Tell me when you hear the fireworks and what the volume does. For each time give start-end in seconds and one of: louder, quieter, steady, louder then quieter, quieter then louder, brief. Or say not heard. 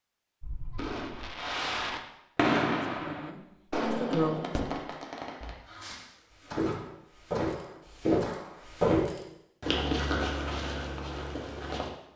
0.4-8.7 louder then quieter.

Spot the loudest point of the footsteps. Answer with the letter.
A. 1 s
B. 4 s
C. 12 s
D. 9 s
D.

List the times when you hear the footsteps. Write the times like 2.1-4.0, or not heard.
6.4-11.9.